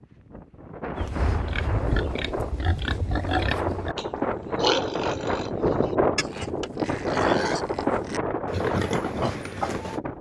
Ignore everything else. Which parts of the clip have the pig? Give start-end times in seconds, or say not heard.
0.9-10.0.